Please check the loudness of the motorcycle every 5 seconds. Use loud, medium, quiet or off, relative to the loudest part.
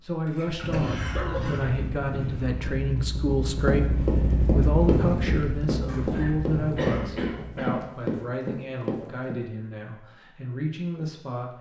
loud, loud, off.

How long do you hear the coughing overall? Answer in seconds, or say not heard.
3 s.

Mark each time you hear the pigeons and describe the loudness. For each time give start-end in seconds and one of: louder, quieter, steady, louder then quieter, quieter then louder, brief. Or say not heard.
not heard.